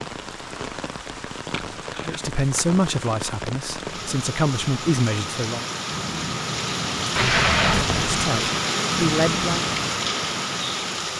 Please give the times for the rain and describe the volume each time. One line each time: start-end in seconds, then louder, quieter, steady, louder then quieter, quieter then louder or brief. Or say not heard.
0.0-11.1 louder.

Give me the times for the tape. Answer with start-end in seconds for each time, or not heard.
1.5-2.6, 7.2-8.1.